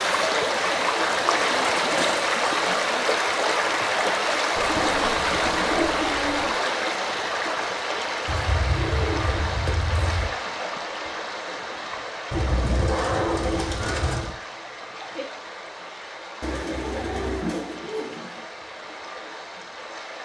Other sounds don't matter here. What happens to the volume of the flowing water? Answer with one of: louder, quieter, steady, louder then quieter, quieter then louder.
quieter.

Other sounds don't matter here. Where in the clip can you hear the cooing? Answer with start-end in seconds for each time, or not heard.
0.5-2.2, 4.5-6.5, 8.2-10.3, 12.3-14.3, 16.4-18.4.